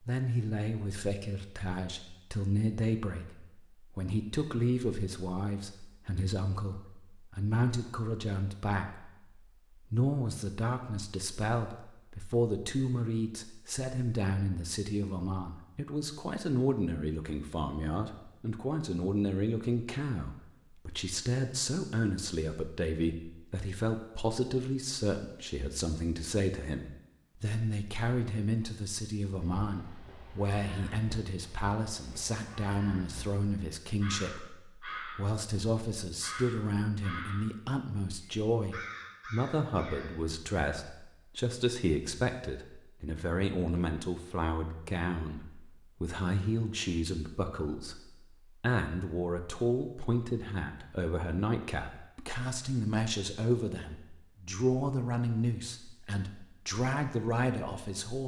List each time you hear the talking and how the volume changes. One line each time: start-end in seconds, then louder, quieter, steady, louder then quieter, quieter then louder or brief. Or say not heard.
0.0-58.2 steady.